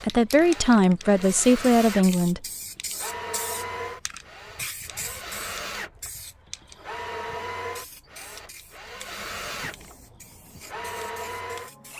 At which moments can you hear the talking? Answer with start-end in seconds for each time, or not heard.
0.0-2.4.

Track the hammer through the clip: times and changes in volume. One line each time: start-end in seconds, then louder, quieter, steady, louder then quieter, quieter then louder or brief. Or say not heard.
not heard.